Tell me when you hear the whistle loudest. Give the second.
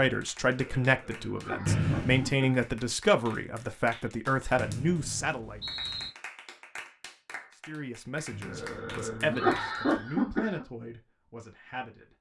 2 s.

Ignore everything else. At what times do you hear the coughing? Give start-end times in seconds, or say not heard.
0.5-2.5, 8.4-10.7.